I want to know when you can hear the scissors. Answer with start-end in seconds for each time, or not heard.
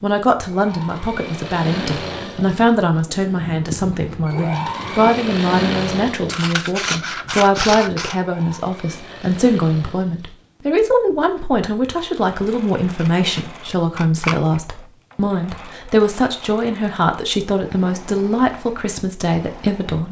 6.3-8.2, 12.9-14.6.